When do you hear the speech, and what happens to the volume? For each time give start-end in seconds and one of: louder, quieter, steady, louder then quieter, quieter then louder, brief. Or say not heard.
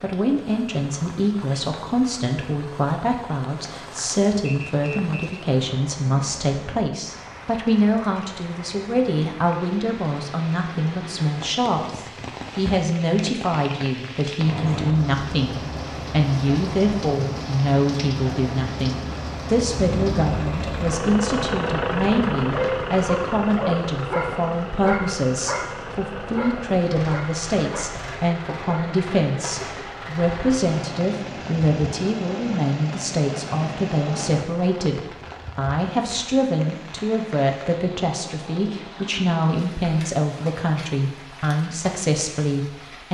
0.0-43.0 steady.